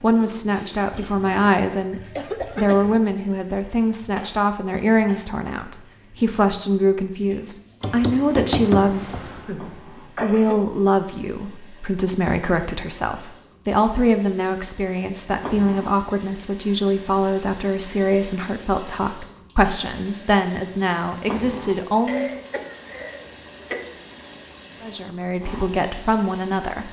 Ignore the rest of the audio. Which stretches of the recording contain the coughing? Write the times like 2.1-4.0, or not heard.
2.1-3.0, 9.2-10.7, 22.1-23.9.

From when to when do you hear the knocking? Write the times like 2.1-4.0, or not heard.
7.8-9.5.